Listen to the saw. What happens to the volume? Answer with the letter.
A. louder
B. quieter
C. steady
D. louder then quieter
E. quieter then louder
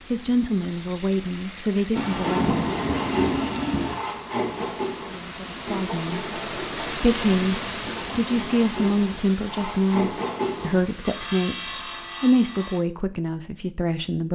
E.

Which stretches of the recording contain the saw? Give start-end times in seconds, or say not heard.
2.2-12.8.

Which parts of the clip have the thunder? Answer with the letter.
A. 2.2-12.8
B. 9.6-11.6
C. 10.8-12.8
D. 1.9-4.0
D.